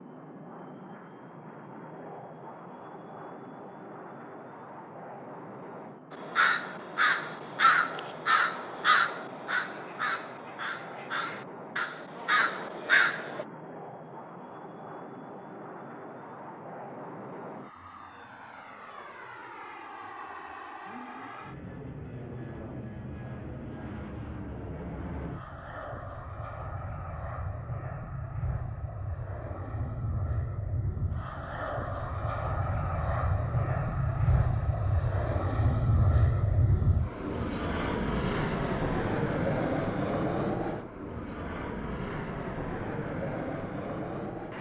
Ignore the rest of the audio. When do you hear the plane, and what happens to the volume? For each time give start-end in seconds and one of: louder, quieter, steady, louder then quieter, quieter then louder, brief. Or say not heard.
0.0-44.5 louder.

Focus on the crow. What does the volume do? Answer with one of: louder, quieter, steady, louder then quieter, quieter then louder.
quieter then louder.